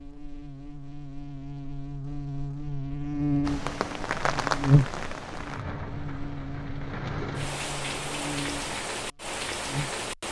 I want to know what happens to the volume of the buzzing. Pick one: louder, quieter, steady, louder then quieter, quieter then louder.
louder then quieter.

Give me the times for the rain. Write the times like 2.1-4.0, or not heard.
3.5-10.2.